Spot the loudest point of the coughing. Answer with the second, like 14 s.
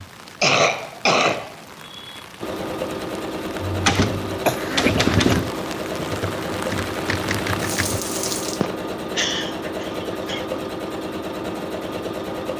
1 s.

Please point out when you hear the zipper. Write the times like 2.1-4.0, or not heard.
not heard.